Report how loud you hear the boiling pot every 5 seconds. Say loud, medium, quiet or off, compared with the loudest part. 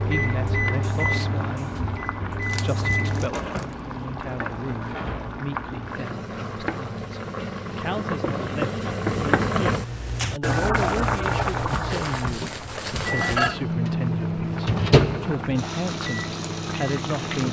medium, loud, loud, medium.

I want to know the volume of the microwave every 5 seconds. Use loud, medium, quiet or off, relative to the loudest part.
medium, off, loud, medium.